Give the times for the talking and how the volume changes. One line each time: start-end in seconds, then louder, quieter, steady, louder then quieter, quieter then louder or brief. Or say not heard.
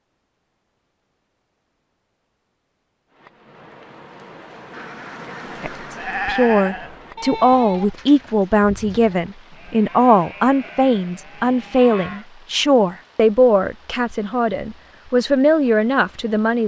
5.6-16.6 steady.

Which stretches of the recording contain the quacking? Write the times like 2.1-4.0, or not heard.
4.7-6.3.